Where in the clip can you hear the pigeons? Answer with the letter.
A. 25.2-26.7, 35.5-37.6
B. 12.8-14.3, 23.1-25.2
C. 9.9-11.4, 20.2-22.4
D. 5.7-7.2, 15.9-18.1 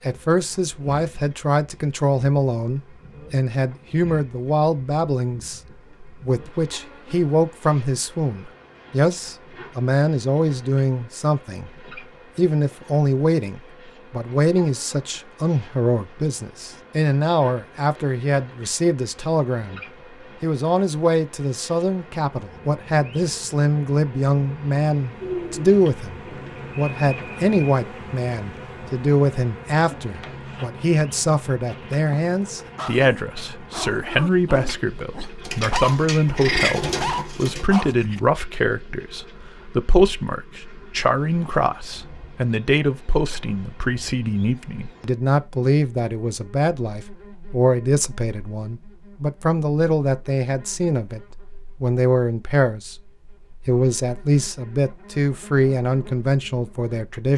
A.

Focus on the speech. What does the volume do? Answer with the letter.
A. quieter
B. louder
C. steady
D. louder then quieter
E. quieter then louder
C.